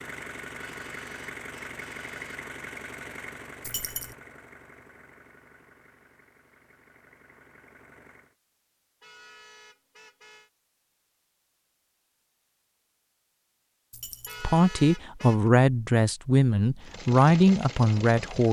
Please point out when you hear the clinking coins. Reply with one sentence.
You can hear the clinking coins from 3.6 to 4.2 s and from 13.9 to 14.4 s.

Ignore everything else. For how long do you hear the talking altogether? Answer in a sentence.
You can hear the talking for 4 seconds altogether.